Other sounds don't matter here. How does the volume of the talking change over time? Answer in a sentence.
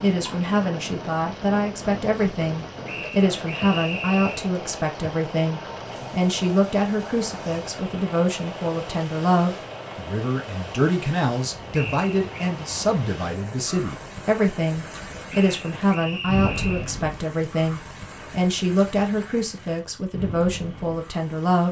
The loudness of the talking stays about the same.